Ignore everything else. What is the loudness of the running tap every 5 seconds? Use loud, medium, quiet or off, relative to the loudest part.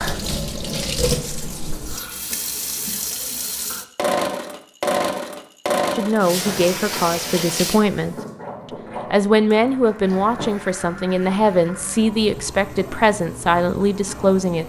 loud, loud, medium.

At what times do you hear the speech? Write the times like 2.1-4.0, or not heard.
6.0-8.2, 9.1-14.6.